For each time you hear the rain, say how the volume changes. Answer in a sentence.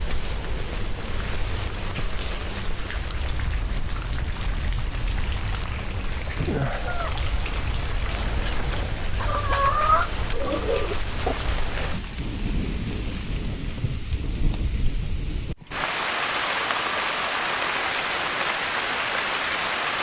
You can hear the rain from 0.0 to 19.9 s, getting louder.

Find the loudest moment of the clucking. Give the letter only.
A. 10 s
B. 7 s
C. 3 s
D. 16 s
A.